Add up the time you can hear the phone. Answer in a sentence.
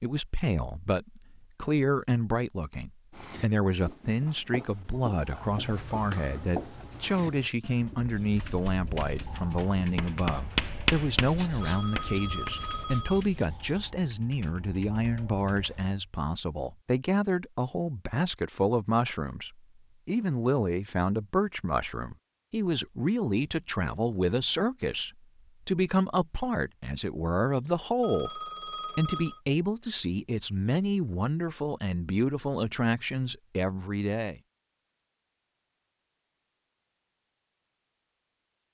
You can hear the phone for 3 seconds altogether.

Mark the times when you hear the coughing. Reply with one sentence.
You can't hear the coughing here.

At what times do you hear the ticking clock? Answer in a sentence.
The ticking clock can't be heard in this clip.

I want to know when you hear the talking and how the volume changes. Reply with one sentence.
You can hear the talking from 0.0 to 34.4 s, at a steady volume.